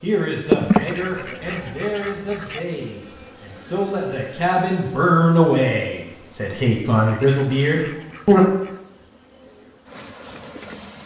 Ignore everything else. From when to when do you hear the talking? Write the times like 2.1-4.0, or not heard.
0.0-8.4.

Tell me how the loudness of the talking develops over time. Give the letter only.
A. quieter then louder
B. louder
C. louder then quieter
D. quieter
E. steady
B.